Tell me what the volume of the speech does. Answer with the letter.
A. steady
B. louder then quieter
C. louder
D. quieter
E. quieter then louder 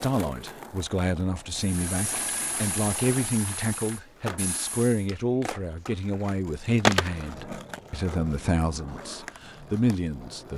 A.